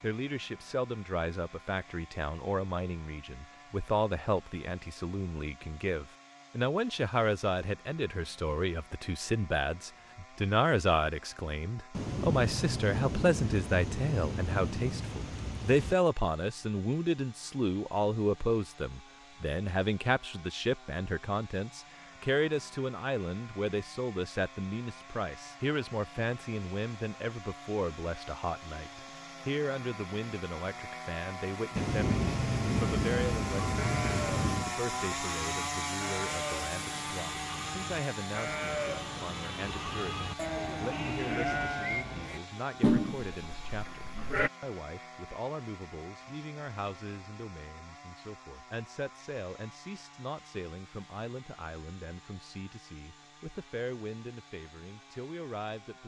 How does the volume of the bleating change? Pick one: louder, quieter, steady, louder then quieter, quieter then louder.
louder.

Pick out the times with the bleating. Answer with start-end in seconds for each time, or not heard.
33.7-44.5.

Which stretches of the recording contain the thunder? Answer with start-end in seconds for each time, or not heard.
11.9-15.9, 31.8-34.7.